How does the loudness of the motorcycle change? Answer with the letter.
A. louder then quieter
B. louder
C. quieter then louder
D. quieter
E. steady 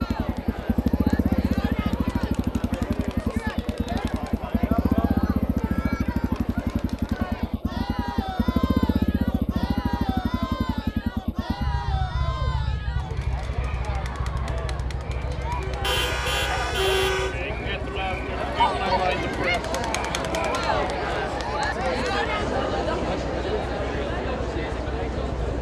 D.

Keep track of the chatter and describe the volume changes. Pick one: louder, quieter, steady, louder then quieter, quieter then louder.
louder.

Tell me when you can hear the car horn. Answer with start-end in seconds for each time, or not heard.
15.8-17.4.